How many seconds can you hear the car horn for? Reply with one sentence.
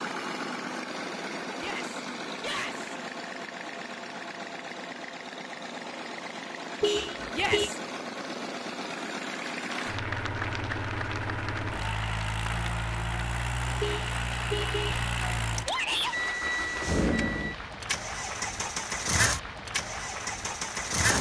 The car horn can be heard for 2 seconds in total.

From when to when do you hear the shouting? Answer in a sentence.
You can hear the shouting from 1.6 to 2.9 s, from 7.3 to 7.8 s and from 15.7 to 16.4 s.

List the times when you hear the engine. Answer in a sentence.
The engine can be heard from 0.0 to 21.1 s.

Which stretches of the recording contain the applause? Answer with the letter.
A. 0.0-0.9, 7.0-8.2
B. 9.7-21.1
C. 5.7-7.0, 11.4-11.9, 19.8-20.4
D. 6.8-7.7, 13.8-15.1
B.